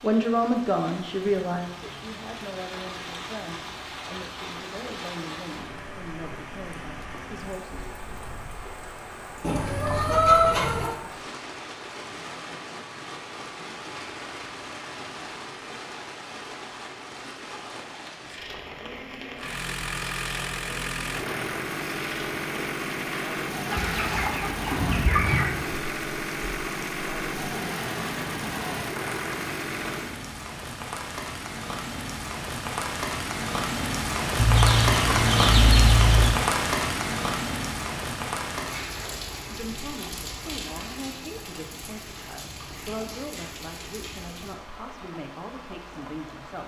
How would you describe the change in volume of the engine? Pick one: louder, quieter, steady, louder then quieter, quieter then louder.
steady.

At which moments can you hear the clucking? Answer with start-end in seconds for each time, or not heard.
9.4-10.9, 23.7-25.5, 34.4-36.4.